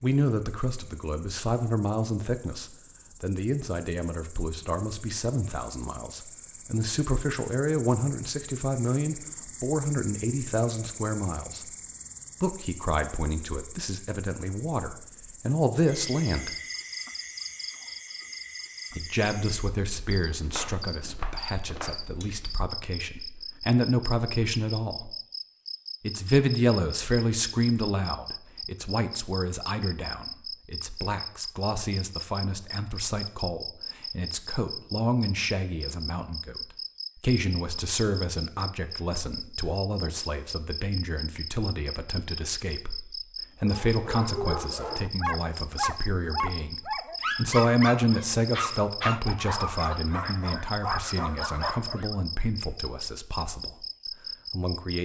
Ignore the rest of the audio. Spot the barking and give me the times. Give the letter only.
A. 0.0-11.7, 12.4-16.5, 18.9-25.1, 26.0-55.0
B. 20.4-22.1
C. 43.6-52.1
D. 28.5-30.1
C.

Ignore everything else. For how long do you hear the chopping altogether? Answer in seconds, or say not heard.
2 s.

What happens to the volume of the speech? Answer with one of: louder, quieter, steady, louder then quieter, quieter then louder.
steady.